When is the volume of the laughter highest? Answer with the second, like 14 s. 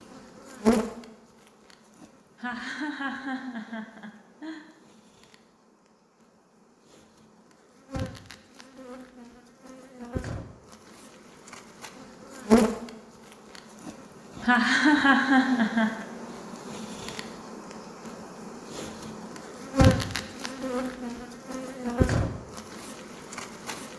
15 s.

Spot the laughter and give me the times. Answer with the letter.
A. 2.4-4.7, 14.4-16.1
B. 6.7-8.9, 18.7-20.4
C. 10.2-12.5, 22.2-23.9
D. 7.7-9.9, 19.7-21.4
A.